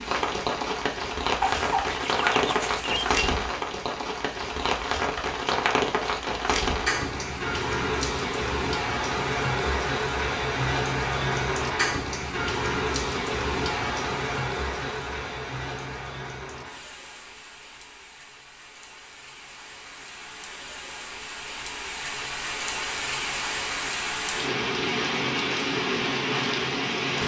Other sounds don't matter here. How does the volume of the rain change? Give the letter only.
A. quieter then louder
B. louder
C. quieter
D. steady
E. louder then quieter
A.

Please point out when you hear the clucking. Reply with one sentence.
You can hear the clucking from 1.4 to 3.2 s.